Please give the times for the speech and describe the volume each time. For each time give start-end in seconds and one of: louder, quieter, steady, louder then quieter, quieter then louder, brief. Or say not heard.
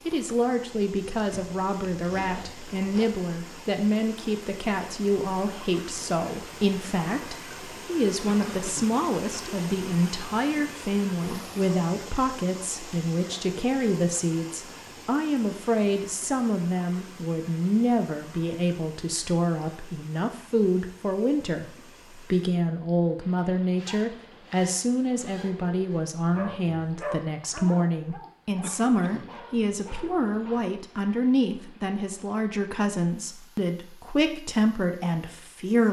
0.1-35.8 steady.